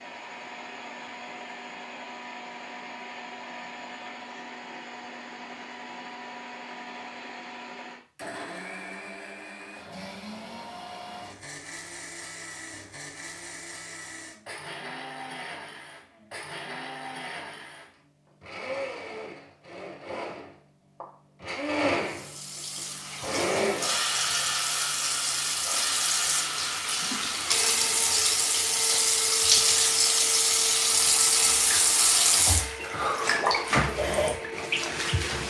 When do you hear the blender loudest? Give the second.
24 s.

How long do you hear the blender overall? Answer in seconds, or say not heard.
35 s.